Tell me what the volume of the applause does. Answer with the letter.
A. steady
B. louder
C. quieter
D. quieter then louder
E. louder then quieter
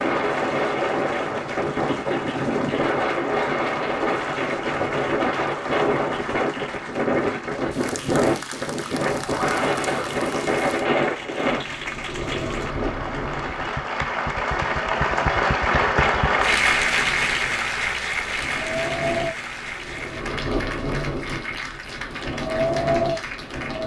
E.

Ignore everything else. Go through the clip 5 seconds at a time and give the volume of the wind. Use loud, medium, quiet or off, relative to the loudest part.
loud, loud, loud, medium, loud.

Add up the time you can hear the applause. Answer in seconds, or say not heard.
24 s.